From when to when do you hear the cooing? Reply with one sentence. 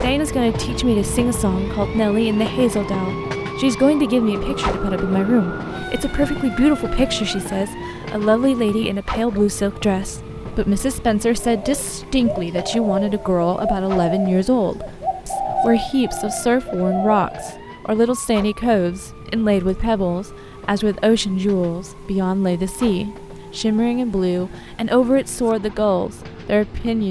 The cooing can be heard from 11.4 to 17.6 s.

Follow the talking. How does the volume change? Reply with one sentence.
The volume of the talking stays about the same.